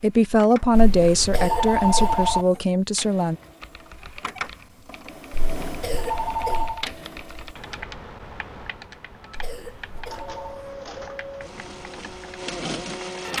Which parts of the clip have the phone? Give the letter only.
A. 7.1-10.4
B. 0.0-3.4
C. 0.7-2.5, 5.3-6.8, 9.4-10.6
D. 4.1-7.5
C.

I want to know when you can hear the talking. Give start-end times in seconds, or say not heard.
0.0-3.4.